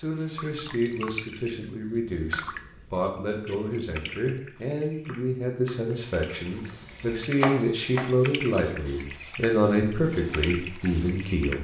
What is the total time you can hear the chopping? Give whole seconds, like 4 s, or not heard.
4 s.